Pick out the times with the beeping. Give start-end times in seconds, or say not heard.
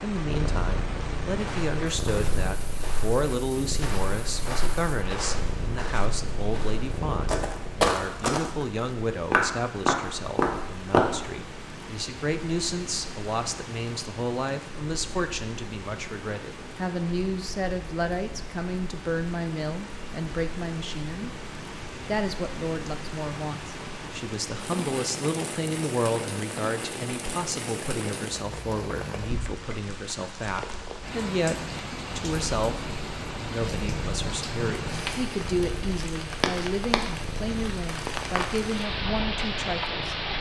not heard.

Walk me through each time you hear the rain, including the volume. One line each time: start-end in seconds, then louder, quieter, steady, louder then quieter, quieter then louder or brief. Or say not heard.
0.0-40.3 louder.